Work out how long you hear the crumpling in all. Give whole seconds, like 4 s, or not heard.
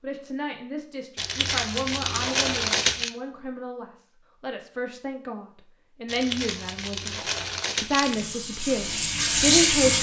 4 s.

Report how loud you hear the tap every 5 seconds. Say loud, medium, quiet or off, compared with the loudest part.
off, loud.